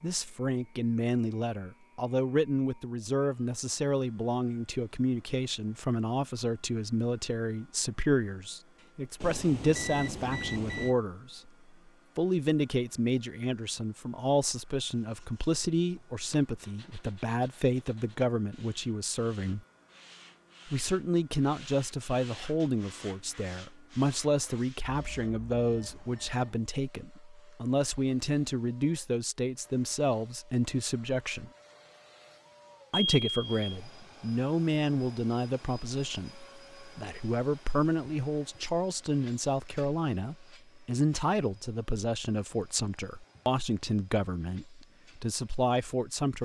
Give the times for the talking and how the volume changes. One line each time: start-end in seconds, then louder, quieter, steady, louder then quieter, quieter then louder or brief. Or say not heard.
0.0-11.5 steady
12.2-19.6 steady
20.6-31.5 steady
32.9-46.3 steady.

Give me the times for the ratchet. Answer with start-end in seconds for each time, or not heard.
not heard.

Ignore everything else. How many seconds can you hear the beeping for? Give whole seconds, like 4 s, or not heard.
4 s.